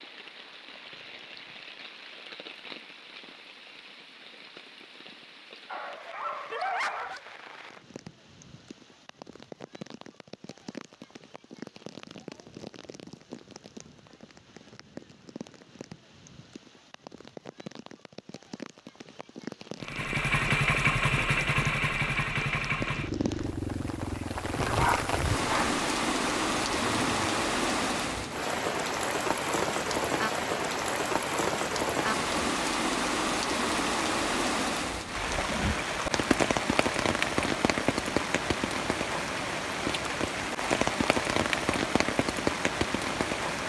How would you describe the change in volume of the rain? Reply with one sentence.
The volume of the rain goes up.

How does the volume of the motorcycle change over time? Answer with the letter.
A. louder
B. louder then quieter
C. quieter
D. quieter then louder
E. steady
C.